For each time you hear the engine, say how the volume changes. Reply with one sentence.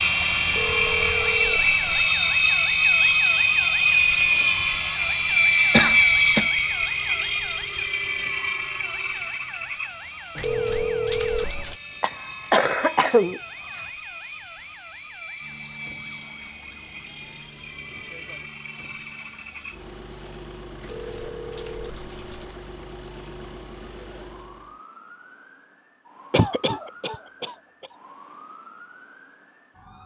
You can hear the engine from 0.0 to 24.8 s, getting quieter.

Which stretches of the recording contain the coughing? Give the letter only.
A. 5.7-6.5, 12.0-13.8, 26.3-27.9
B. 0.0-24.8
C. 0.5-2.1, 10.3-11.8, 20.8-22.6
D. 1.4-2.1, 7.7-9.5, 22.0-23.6
A.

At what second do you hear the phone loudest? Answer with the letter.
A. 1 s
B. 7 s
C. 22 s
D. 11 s
D.